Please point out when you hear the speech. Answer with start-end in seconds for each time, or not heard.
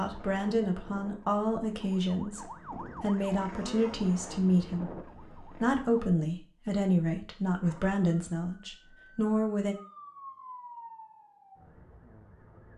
0.0-9.8.